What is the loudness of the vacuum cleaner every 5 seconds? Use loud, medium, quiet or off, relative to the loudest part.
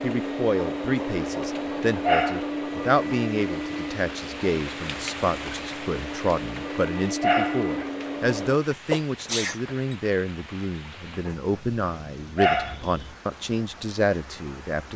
loud, loud, off.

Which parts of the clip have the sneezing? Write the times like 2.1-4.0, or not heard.
8.0-9.8.